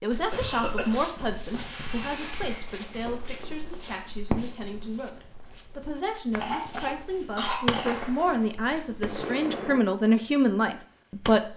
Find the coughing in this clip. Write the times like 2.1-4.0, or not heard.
0.3-1.0, 6.3-8.0.